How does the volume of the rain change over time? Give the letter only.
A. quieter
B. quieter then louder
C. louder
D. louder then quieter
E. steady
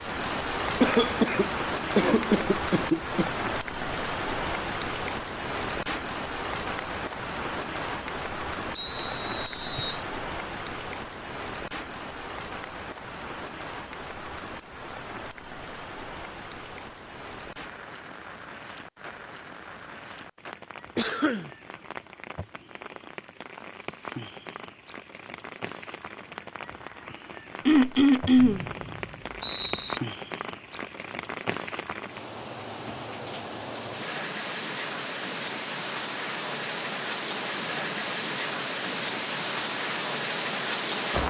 B.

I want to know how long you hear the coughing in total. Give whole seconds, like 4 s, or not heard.
4 s.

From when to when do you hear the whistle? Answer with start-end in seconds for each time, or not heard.
8.8-10.1, 28.4-30.0.